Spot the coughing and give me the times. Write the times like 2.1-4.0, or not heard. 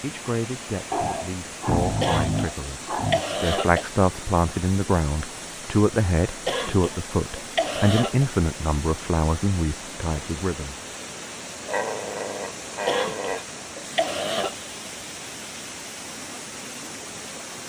2.0-3.9, 6.5-8.2, 12.8-14.7.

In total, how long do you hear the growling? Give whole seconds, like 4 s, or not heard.
4 s.